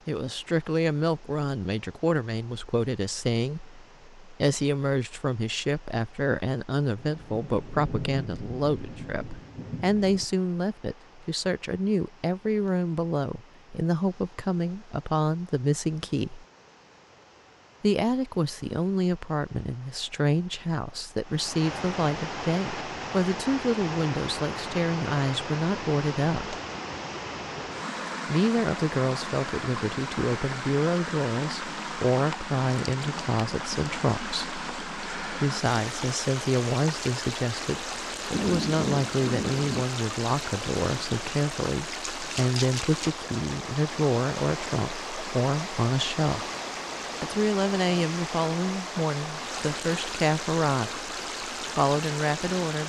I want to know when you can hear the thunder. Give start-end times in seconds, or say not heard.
7.0-10.2, 38.3-39.9.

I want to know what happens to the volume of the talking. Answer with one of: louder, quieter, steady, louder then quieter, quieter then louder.
steady.